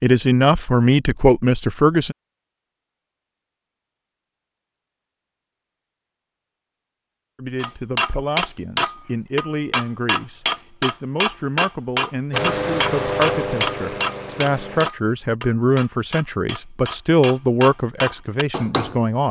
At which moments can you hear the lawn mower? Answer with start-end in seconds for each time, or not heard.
12.3-14.9.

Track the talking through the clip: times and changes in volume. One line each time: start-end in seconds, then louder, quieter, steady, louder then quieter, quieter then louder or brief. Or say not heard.
0.0-2.1 brief
7.3-19.2 louder.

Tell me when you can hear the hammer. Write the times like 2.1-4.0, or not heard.
7.5-18.9.